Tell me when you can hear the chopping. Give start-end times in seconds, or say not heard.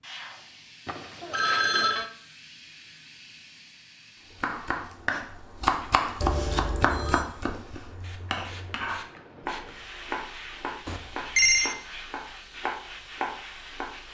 4.4-14.0.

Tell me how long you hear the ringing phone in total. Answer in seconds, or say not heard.
3 s.